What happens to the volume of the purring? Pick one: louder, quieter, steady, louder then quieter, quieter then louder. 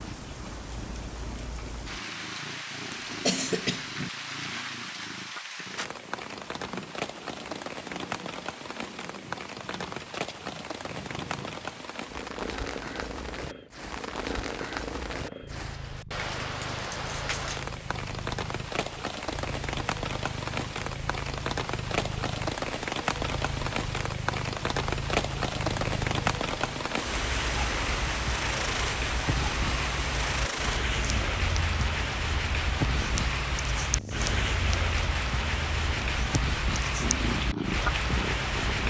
louder.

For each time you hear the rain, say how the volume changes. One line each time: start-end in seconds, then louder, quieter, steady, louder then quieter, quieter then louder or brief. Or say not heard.
0.0-38.8 louder.